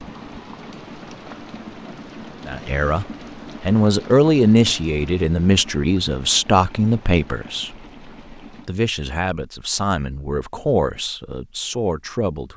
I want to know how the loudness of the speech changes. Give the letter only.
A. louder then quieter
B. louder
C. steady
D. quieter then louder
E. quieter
E.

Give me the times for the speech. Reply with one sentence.
You can hear the speech from 2.5 to 12.5 s.